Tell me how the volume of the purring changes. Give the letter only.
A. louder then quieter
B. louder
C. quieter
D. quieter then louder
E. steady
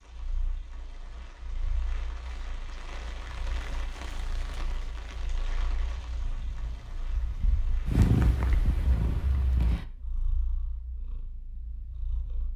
A.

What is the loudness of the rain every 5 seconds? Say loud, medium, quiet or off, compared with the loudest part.
loud, loud, off.